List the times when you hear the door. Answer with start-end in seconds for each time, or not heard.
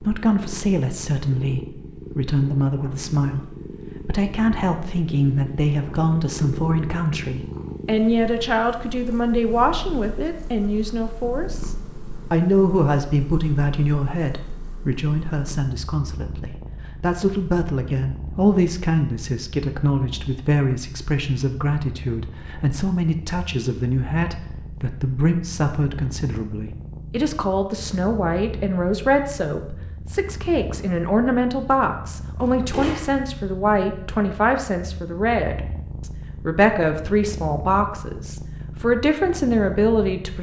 32.4-33.1.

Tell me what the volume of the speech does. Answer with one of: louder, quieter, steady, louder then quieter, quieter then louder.
steady.